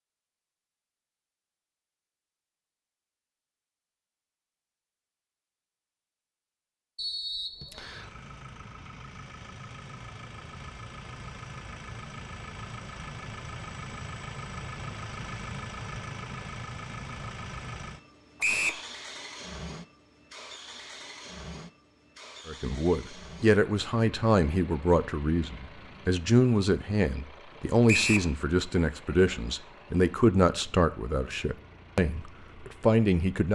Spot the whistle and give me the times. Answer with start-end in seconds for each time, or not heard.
7.0-8.1, 18.4-18.8, 27.9-28.3.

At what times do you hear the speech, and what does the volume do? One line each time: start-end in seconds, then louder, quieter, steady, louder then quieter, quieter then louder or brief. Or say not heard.
22.4-33.5 steady.